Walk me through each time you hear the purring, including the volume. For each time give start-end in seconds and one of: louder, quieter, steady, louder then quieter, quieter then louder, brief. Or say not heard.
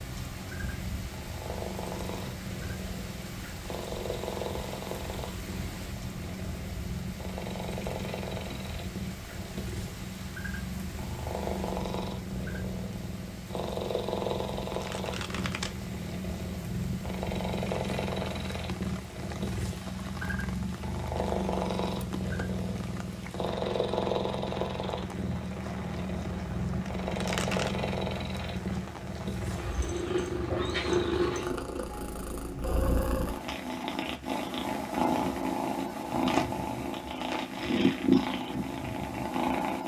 0.0-39.8 louder.